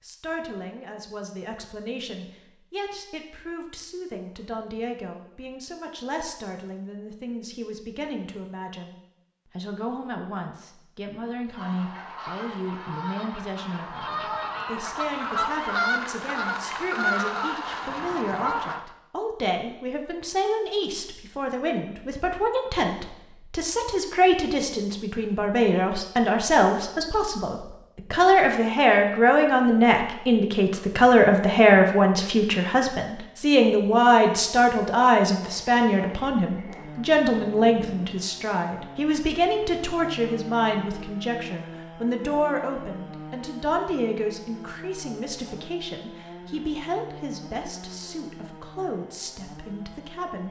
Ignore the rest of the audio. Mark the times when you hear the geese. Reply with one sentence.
You can hear the geese from 11.5 to 18.8 s.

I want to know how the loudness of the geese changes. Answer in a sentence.
The loudness of the geese goes up.